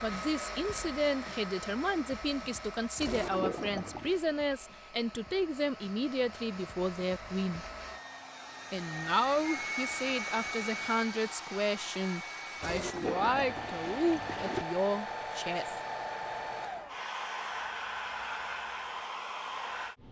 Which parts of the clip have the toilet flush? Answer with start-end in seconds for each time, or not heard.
3.0-4.2, 12.6-14.7.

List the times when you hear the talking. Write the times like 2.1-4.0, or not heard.
0.0-7.7, 8.7-15.8.